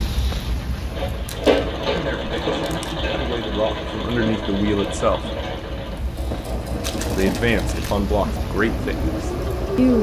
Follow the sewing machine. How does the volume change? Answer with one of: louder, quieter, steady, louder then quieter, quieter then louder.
quieter.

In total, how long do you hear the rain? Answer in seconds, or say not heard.
10 s.